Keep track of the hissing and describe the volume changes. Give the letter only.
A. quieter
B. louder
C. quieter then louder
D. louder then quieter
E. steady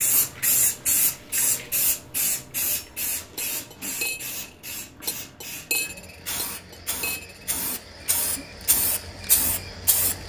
C.